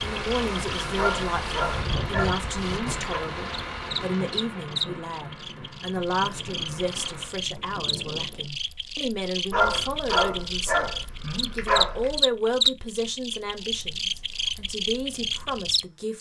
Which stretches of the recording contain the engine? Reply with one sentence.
The engine can be heard from 0.0 to 7.4 s.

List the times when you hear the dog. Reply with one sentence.
You can hear the dog from 0.9 to 3.2 s and from 9.5 to 12.2 s.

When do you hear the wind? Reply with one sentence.
The wind can be heard from 0.0 to 8.6 s.